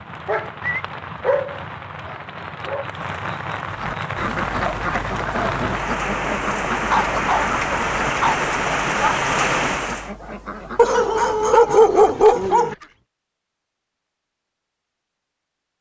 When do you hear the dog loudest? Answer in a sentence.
The volume of the dog peaks at 12 seconds.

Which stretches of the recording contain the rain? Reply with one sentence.
The rain can be heard from 0.0 to 10.1 s.